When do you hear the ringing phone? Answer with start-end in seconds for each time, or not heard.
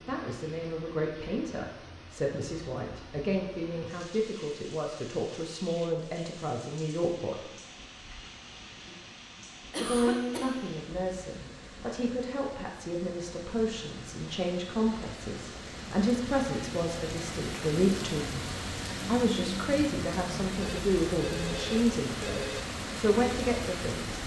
20.6-22.6.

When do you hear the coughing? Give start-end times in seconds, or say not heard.
9.7-10.6.